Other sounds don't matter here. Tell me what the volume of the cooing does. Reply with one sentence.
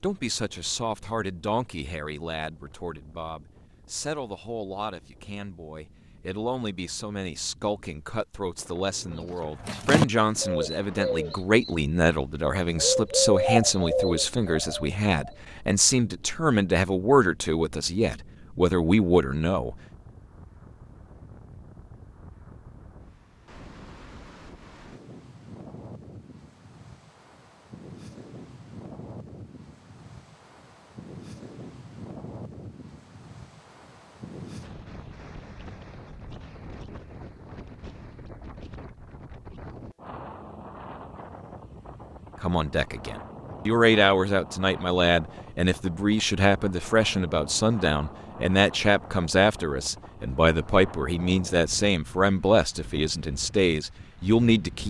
The loudness of the cooing goes down, then up.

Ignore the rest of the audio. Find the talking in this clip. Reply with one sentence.
You can hear the talking from 0.0 to 19.8 s and from 42.4 to 54.8 s.